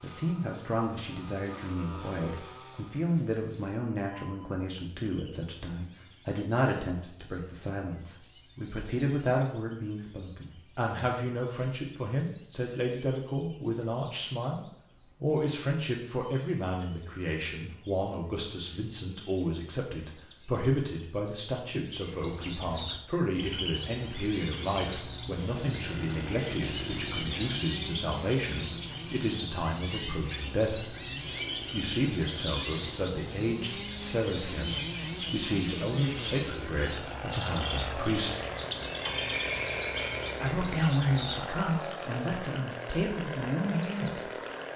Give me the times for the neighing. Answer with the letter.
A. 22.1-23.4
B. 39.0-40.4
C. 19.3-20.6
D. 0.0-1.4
B.